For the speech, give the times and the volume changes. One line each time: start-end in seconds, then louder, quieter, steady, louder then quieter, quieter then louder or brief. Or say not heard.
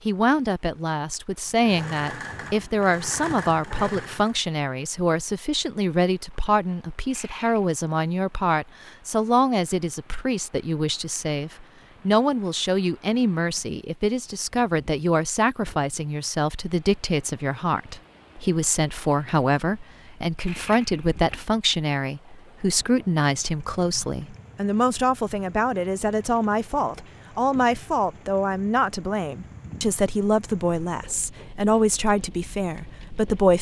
0.1-33.5 steady.